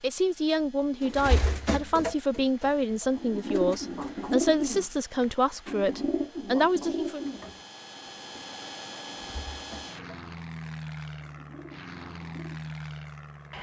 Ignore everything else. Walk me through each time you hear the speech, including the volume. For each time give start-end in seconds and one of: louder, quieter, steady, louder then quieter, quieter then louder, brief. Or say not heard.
0.0-7.2 steady.